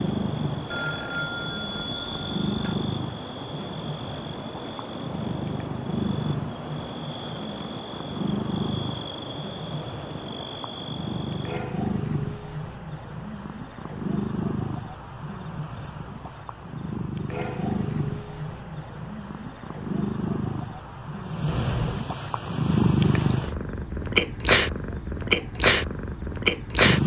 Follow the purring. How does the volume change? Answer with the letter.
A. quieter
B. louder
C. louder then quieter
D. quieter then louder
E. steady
B.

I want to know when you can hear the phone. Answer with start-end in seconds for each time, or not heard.
0.7-2.8, 21.4-22.1.